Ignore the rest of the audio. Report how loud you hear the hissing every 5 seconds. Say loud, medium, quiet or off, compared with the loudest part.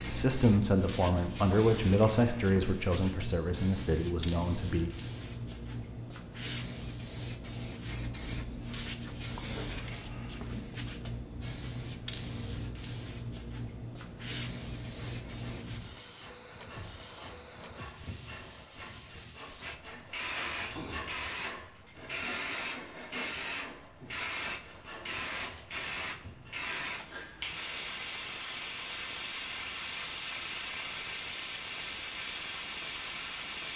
loud, loud, loud, medium, loud, loud, loud.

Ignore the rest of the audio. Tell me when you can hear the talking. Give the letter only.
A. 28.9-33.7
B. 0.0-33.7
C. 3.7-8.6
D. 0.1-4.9
D.